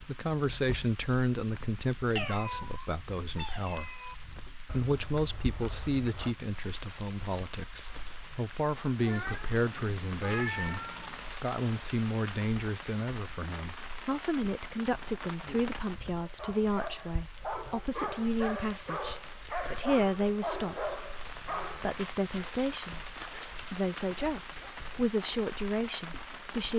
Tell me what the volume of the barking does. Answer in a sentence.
The loudness of the barking goes down.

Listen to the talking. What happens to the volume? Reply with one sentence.
The volume of the talking stays about the same.